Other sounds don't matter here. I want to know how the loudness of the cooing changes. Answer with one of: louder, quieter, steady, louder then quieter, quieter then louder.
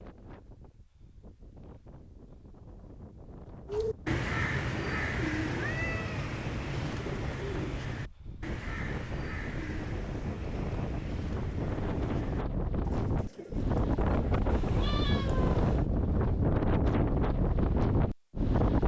quieter.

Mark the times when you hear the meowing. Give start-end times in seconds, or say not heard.
5.5-6.2, 14.5-15.8.